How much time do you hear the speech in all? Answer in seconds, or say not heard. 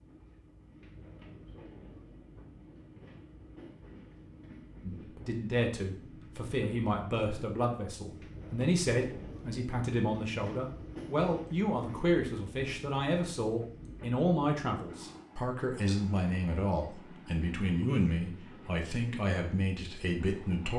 16 s.